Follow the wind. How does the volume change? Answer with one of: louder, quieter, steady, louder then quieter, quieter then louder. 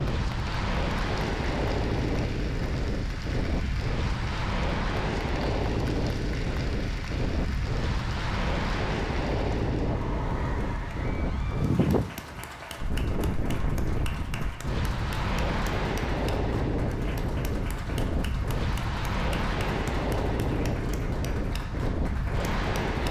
steady.